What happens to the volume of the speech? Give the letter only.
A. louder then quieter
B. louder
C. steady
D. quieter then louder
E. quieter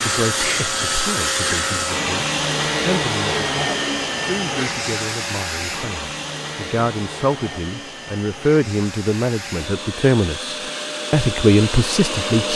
B.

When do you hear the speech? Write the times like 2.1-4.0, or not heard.
0.0-3.5, 4.2-12.5.